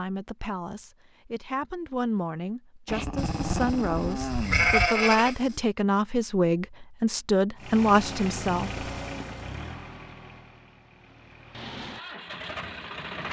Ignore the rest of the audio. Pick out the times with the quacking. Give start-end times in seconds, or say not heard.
not heard.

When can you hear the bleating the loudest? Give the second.
5 s.